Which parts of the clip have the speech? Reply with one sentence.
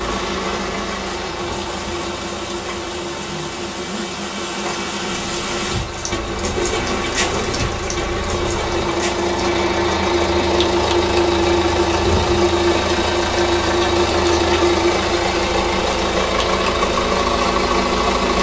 You can't hear the speech here.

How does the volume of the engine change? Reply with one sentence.
The loudness of the engine goes up.